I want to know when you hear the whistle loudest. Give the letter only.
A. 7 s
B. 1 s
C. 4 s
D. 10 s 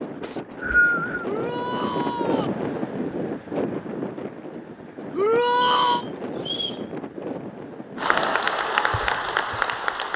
B.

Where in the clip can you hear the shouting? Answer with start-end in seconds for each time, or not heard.
1.2-2.5, 5.2-6.0.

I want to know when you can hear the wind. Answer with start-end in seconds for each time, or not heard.
0.0-8.6.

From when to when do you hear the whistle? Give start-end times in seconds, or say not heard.
0.2-1.2, 5.8-6.8.